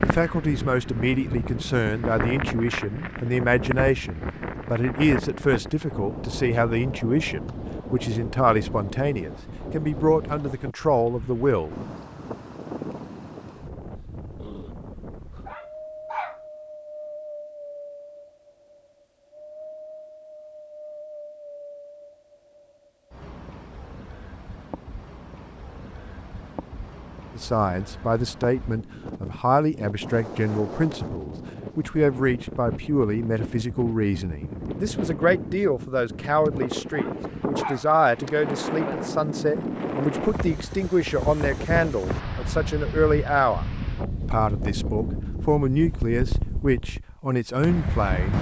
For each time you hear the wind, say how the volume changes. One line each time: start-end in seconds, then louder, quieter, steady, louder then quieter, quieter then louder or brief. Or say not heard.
0.0-48.3 quieter then louder.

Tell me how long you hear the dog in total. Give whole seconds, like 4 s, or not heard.
2 s.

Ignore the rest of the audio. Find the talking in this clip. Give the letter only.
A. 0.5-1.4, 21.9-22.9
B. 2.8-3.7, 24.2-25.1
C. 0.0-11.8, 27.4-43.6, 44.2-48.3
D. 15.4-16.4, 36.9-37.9
C.